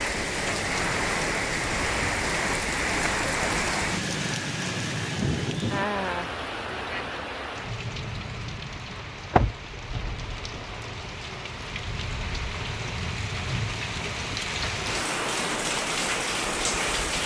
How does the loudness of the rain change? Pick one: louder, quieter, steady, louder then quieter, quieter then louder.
quieter then louder.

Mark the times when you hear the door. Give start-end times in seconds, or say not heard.
8.9-10.1.